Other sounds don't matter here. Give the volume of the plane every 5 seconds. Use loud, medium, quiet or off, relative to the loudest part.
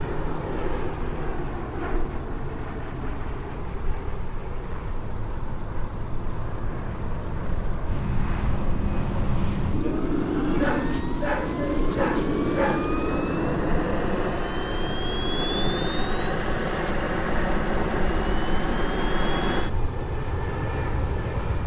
medium, medium, loud, loud, medium.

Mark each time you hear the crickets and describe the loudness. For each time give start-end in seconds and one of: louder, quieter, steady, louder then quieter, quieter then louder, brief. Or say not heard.
0.0-21.6 steady.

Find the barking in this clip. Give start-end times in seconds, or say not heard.
10.6-13.0.